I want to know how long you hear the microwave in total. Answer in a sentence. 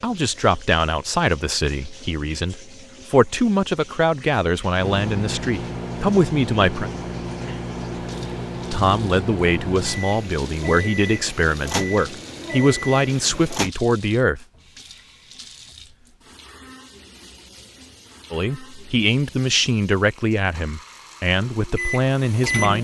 The microwave can be heard for 10 seconds in total.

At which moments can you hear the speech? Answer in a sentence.
You can hear the speech from 0.0 to 6.9 s, from 8.7 to 14.4 s and from 18.3 to 22.7 s.